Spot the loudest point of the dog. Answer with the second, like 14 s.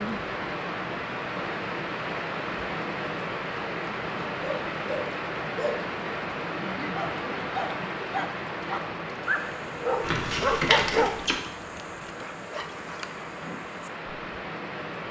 11 s.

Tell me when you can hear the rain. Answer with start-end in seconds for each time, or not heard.
0.0-15.0.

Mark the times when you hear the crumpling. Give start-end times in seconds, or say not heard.
10.0-11.3.